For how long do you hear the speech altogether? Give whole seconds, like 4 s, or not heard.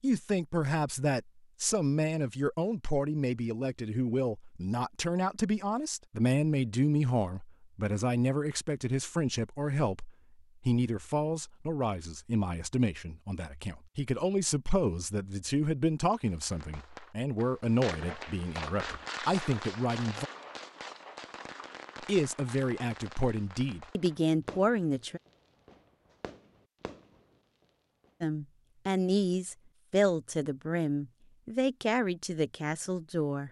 29 s.